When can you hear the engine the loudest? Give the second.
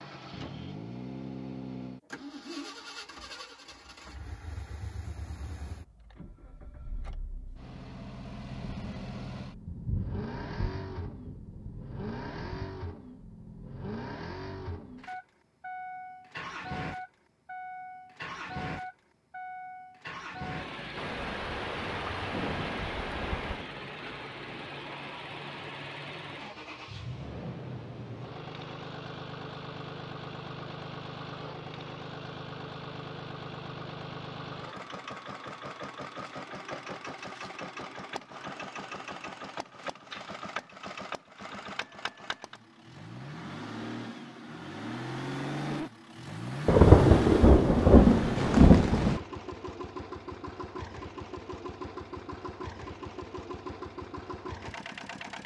47 s.